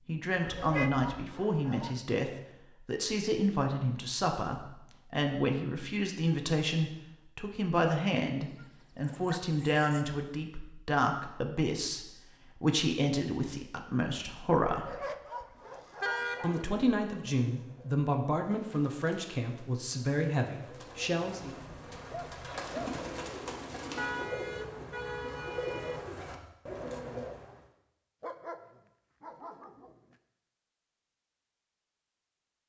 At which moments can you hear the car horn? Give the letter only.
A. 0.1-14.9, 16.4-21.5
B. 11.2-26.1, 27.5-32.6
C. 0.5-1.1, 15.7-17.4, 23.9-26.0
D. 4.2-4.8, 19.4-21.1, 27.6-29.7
C.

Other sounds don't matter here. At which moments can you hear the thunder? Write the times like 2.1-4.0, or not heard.
not heard.